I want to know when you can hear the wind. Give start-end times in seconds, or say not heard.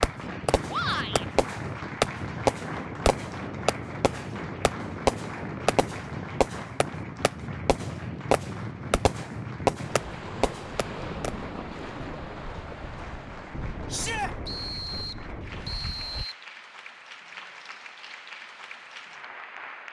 0.0-16.2.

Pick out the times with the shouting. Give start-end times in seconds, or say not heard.
0.7-1.2, 13.9-14.3.